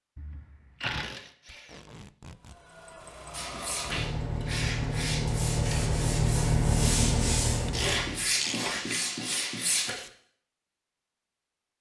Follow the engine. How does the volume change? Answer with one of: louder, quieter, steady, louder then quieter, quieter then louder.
louder.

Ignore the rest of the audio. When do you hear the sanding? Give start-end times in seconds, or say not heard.
3.3-9.9.